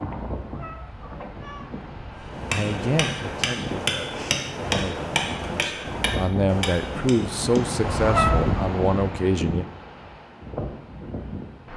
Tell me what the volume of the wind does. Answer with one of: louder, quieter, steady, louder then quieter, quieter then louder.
louder then quieter.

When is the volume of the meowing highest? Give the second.
8 s.